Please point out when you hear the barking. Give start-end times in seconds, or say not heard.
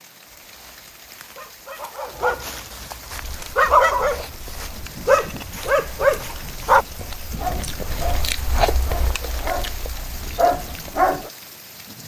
0.2-11.3.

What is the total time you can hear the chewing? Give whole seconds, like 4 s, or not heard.
8 s.